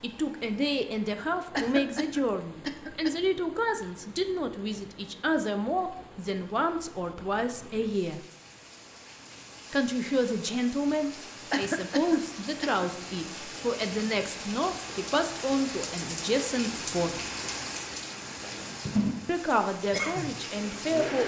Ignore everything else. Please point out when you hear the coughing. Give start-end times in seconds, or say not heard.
1.5-3.1, 11.5-12.8.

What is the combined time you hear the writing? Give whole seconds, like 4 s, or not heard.
not heard.